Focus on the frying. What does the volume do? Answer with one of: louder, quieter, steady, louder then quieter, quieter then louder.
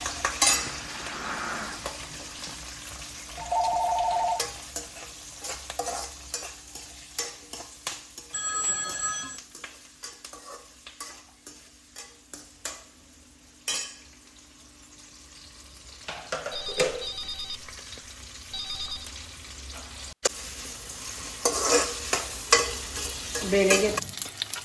quieter then louder.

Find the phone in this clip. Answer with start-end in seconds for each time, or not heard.
3.4-4.5, 8.3-9.4, 16.5-19.1.